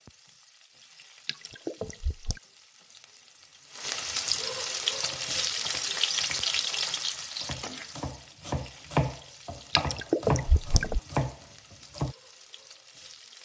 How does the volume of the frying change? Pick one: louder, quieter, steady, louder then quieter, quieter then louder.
louder then quieter.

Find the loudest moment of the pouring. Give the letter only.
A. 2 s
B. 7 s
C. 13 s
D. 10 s
D.